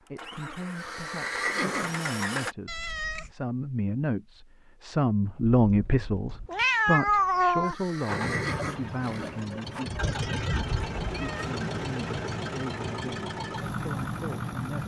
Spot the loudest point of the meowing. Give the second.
7 s.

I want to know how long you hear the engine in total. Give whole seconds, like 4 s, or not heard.
9 s.